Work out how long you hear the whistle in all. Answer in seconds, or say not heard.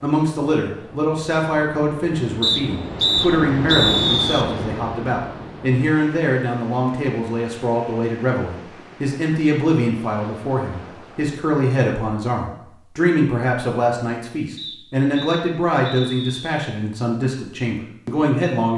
4 s.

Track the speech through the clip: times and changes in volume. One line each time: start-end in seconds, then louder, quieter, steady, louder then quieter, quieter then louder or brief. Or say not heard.
0.0-18.7 steady.